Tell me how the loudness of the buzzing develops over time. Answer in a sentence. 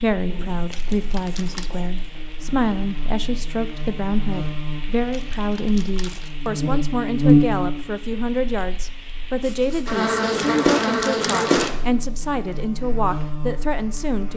The loudness of the buzzing goes up, then down.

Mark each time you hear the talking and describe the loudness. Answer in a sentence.
The talking can be heard from 0.0 to 14.3 s, at a steady volume.